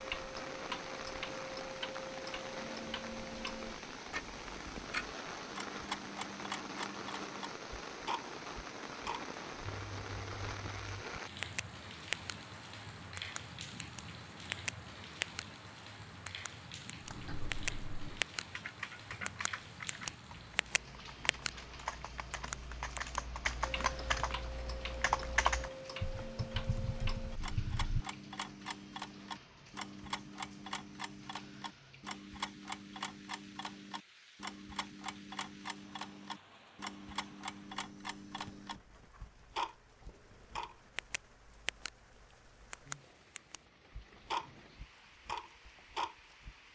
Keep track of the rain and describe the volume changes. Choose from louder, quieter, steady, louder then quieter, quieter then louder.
quieter.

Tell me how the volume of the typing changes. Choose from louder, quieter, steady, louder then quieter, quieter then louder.
louder then quieter.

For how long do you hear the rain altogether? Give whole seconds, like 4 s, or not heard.
47 s.